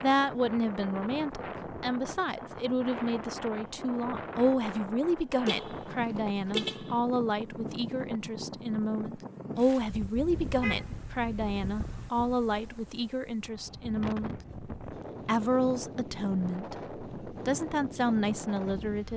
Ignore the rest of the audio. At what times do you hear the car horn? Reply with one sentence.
The car horn can be heard from 5.5 to 7.0 s and from 10.3 to 12.1 s.